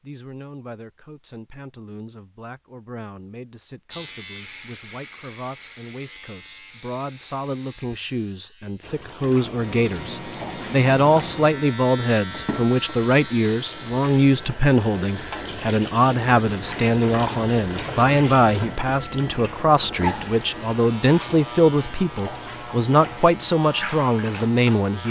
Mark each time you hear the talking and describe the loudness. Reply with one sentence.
You can hear the talking from 0.0 to 25.0 s, getting louder.